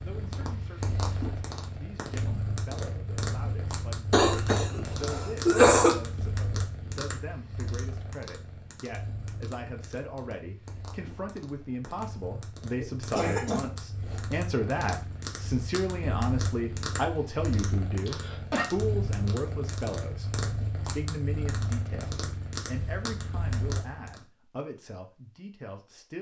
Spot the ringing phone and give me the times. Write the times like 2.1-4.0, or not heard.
not heard.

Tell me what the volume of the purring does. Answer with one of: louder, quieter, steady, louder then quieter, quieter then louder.
quieter then louder.